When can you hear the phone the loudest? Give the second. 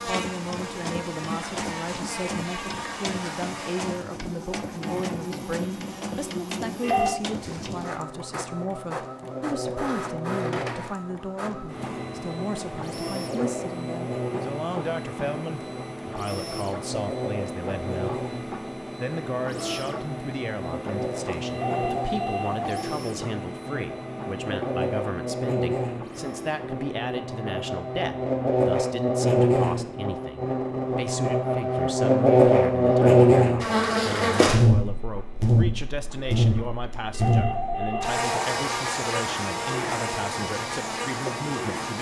7 s.